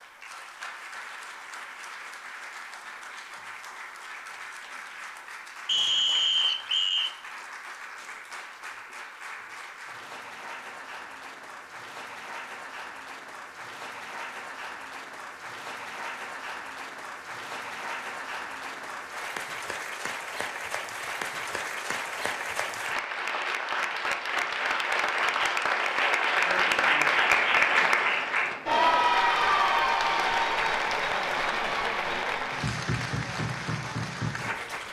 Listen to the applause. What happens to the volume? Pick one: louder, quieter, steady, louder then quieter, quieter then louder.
louder.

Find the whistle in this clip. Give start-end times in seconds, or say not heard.
5.7-7.1.